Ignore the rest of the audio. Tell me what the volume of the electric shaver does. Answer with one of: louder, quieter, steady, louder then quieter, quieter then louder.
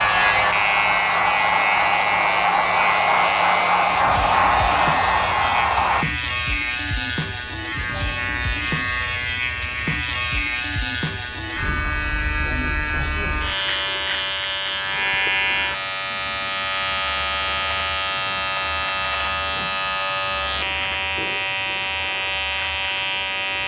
steady.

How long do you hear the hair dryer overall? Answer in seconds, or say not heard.
6 s.